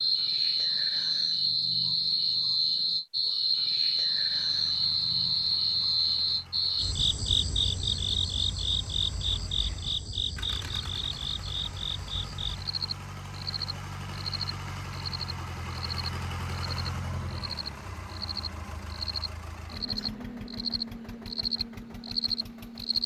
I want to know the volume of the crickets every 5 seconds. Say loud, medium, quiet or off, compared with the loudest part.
loud, loud, medium, medium, medium.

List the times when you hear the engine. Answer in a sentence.
The engine can be heard from 4.2 to 23.0 s.